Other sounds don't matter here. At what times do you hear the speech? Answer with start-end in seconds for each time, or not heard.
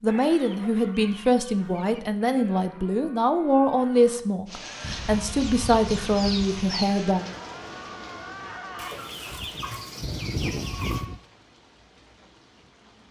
0.0-7.2.